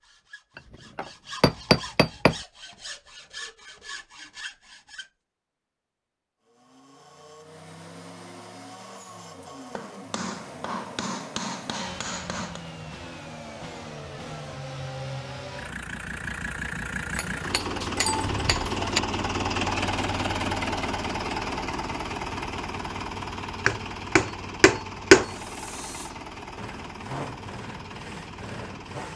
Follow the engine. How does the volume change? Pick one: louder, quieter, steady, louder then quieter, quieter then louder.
louder then quieter.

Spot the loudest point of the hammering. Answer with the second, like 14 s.
25 s.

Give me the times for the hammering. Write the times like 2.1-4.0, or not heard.
0.6-2.4, 9.8-12.6, 17.1-19.0, 23.6-25.3.